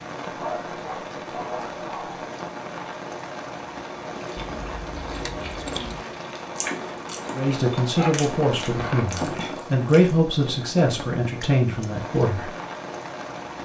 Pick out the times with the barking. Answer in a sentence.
You can hear the barking from 0.2 to 2.2 s and from 8.0 to 9.5 s.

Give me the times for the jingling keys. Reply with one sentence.
The jingling keys can be heard from 4.3 to 6.0 s.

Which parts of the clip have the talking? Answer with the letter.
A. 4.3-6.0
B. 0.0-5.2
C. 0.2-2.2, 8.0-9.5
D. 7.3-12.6
D.